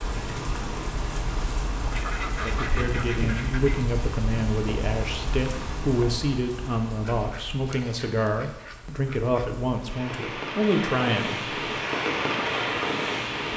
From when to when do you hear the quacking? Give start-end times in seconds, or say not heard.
1.9-3.8, 7.0-9.4.